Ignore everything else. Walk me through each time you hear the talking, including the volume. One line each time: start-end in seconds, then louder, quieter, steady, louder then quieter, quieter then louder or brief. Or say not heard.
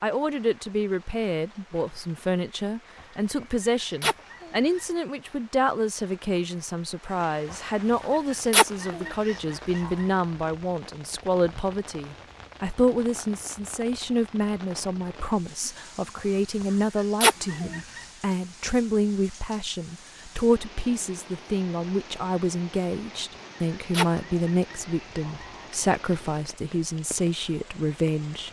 0.0-28.4 steady.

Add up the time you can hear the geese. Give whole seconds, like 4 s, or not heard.
5 s.